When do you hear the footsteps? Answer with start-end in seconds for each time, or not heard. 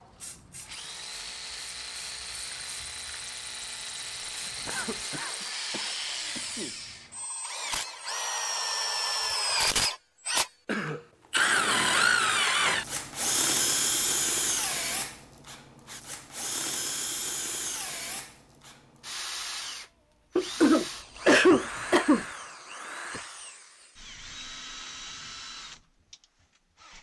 not heard.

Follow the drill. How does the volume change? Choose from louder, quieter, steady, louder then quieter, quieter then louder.
louder then quieter.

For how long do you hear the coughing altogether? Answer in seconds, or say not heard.
5 s.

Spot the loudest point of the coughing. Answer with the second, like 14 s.
21 s.